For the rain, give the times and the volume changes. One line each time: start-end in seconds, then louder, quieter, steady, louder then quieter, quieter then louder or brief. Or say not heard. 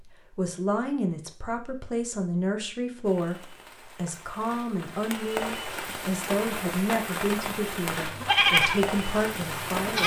3.0-10.0 louder.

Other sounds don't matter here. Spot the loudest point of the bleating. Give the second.
8 s.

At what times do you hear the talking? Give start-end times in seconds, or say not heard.
0.0-10.0.